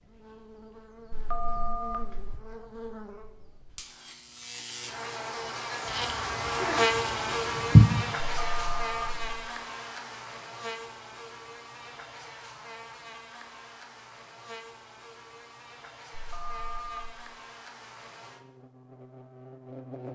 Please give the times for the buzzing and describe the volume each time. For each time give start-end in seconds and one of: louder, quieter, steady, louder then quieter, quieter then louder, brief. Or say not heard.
0.0-20.0 louder then quieter.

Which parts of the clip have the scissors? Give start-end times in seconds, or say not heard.
5.8-7.8.